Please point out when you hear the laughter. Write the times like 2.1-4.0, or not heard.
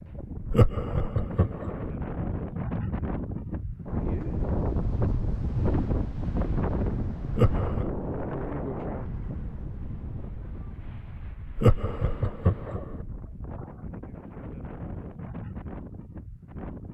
0.5-1.9, 7.3-7.9, 11.6-12.9.